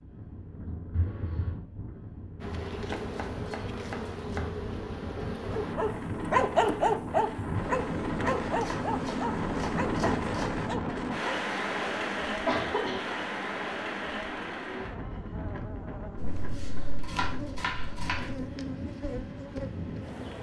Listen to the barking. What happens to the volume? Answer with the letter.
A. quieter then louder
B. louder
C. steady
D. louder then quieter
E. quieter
E.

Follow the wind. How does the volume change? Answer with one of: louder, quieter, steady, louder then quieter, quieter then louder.
louder then quieter.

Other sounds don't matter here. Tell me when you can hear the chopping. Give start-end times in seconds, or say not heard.
2.9-4.5, 8.2-10.5, 16.1-18.4.